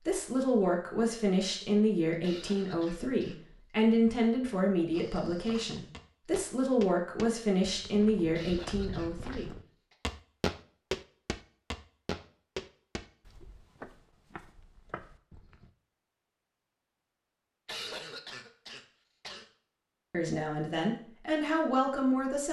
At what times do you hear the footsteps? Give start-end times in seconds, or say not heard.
4.9-15.7.